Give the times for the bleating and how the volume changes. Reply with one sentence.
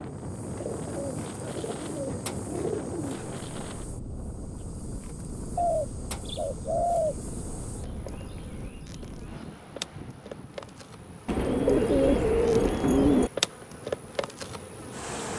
The bleating can't be heard in this clip.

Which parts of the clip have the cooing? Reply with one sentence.
You can hear the cooing from 0.6 to 3.4 s, from 5.5 to 7.2 s and from 11.2 to 13.3 s.